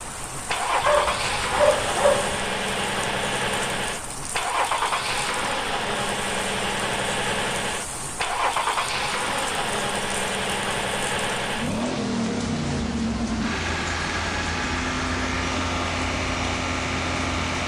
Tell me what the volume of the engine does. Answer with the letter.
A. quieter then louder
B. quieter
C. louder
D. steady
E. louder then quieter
D.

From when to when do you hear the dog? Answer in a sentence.
The dog can be heard from 0.8 to 2.4 s.